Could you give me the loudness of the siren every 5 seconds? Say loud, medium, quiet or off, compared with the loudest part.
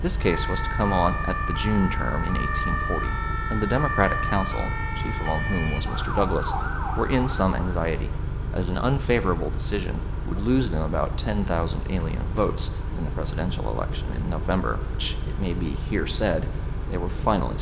loud, loud, off, off.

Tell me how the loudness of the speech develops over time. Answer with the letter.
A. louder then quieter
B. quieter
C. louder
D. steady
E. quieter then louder
D.